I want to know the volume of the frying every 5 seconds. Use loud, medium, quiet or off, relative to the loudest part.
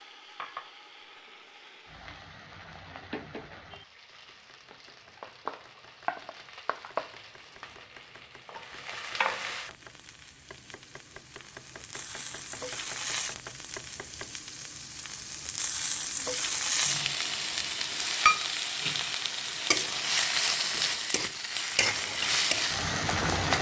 quiet, medium, quiet, loud, loud.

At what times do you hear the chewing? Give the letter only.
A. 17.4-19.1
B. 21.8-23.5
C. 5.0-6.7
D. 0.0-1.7
B.